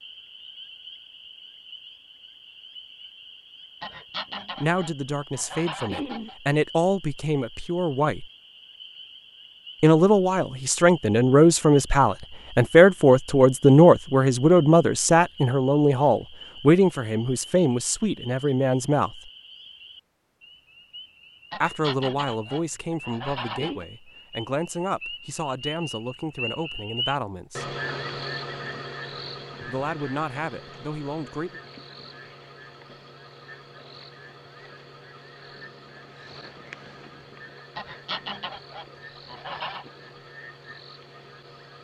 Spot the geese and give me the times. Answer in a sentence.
The geese can be heard from 3.8 to 6.3 s, from 21.5 to 23.9 s and from 37.8 to 39.9 s.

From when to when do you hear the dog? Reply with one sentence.
The dog can't be heard in this clip.